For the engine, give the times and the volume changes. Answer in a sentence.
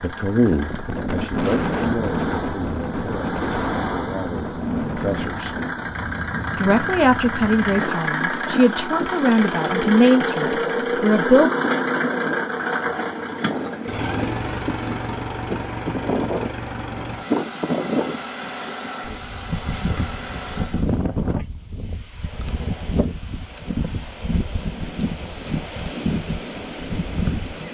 The engine can be heard from 0.0 to 20.9 s, getting louder then quieter.